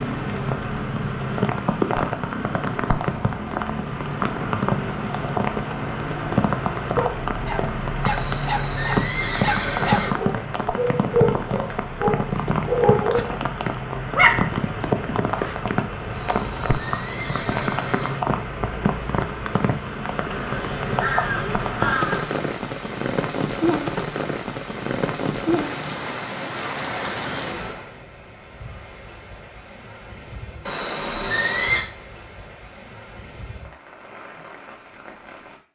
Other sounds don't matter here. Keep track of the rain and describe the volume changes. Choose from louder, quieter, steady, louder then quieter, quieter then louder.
quieter.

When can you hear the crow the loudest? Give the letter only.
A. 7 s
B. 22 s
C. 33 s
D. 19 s
B.